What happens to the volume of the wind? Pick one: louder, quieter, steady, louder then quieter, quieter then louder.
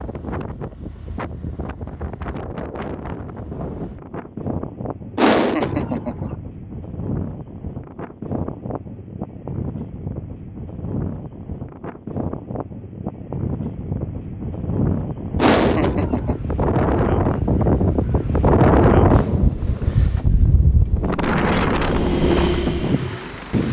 louder.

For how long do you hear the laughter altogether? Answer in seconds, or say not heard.
2 s.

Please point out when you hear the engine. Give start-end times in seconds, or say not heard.
21.8-23.6.